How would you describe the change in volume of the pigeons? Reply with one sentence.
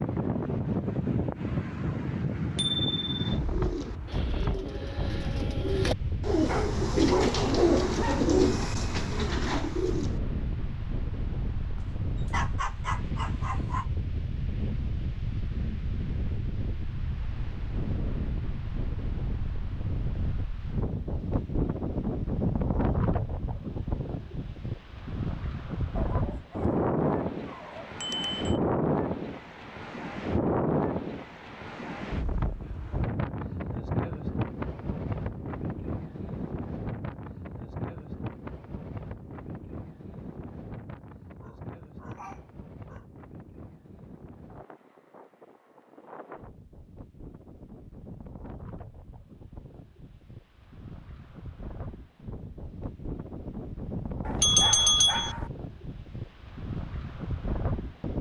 The volume of the pigeons goes up, then down.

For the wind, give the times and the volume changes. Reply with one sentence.
You can hear the wind from 0.0 to 58.1 s, getting quieter.